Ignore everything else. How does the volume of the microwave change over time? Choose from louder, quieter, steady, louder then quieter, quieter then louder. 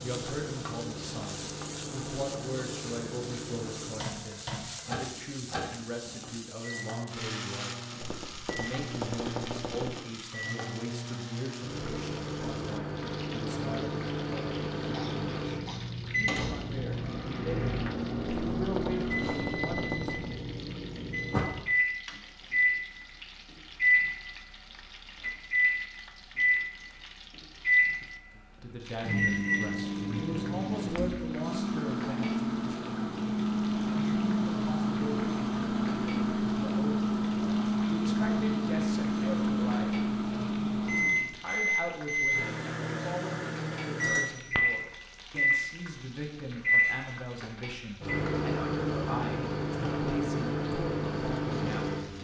louder.